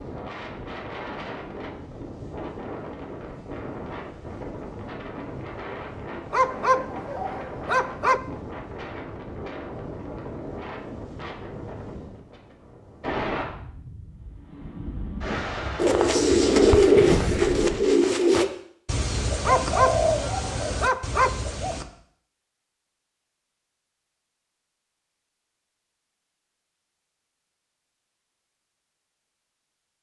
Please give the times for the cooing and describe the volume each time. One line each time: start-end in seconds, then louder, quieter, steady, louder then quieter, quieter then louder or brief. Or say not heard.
15.8-21.9 quieter.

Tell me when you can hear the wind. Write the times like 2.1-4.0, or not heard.
0.0-17.9.